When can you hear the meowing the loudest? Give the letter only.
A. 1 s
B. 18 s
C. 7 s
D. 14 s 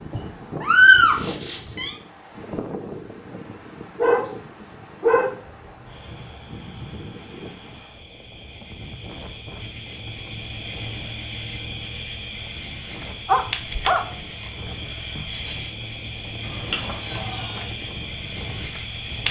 A.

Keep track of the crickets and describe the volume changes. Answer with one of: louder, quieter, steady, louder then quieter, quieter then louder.
louder.